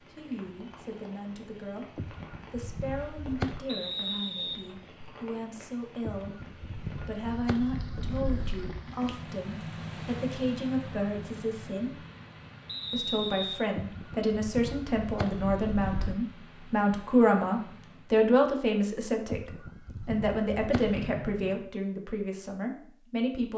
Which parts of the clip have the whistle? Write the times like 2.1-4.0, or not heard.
3.6-5.1, 12.7-13.6, 20.9-21.6.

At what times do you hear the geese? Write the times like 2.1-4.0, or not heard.
1.9-3.6, 6.0-8.8, 13.8-16.2, 19.3-21.1.